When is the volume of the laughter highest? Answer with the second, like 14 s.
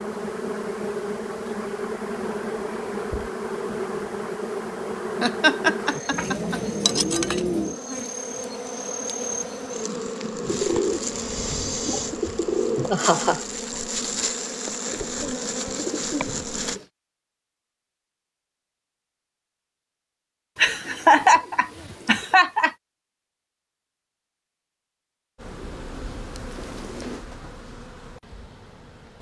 21 s.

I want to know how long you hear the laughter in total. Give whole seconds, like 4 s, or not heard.
4 s.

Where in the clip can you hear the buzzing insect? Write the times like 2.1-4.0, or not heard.
0.0-16.8, 25.4-29.1.